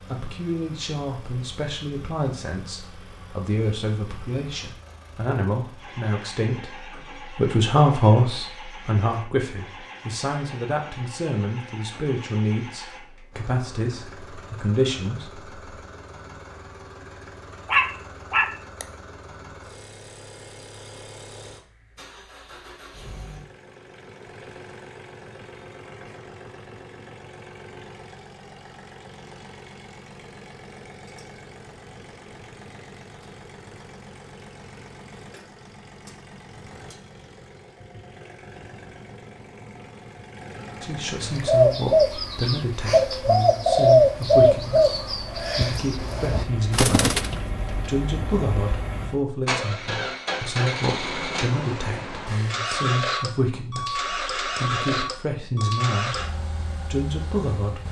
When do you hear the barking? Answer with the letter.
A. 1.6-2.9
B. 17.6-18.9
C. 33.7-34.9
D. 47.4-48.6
B.